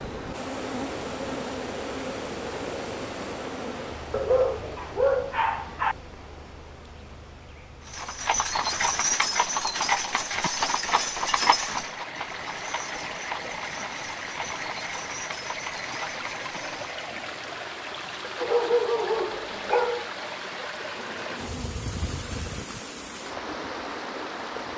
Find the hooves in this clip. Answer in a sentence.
You can hear the hooves from 7.8 to 16.9 s.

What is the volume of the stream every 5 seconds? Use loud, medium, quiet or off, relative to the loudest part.
loud, quiet, loud, loud, loud.